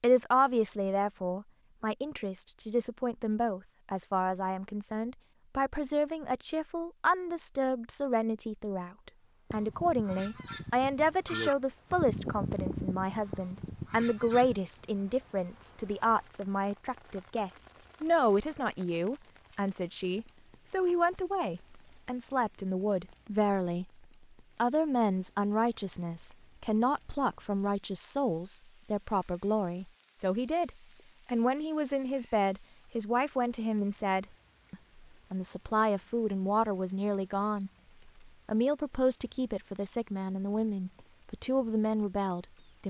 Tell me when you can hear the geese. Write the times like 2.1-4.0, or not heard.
9.5-14.6.